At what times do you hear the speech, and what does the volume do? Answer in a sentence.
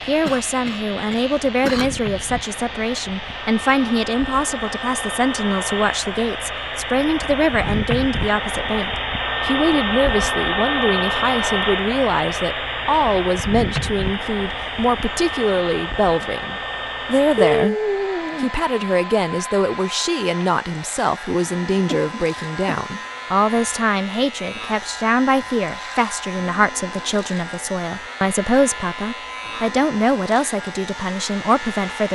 You can hear the speech from 0.1 to 17.8 s, at a steady volume; and from 18.4 to 32.0 s, at a steady volume.